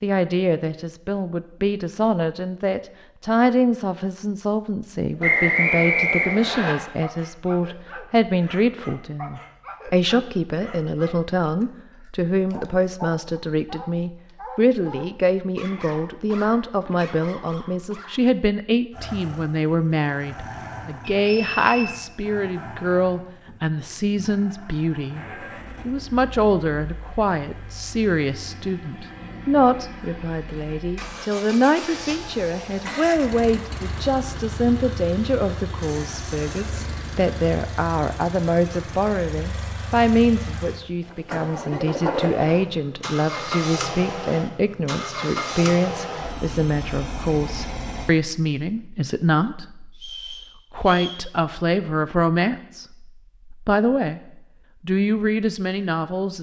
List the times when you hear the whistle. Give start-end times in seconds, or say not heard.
5.2-6.8, 21.2-21.9, 50.0-51.2.